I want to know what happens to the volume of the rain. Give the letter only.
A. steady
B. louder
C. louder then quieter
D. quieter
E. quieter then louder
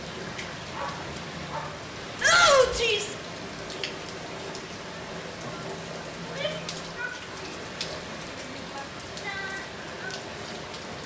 A.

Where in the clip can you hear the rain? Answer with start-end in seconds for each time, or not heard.
0.0-11.0.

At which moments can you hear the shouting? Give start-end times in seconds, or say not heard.
2.2-3.1, 6.2-7.5, 8.2-8.8.